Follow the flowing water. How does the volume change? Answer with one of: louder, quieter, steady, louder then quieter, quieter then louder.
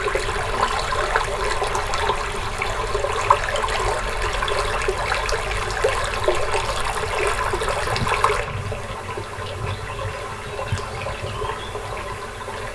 quieter.